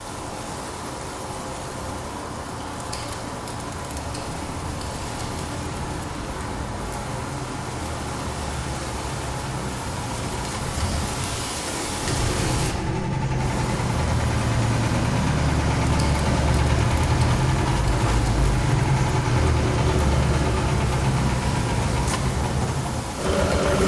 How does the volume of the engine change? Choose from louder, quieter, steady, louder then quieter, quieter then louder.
louder.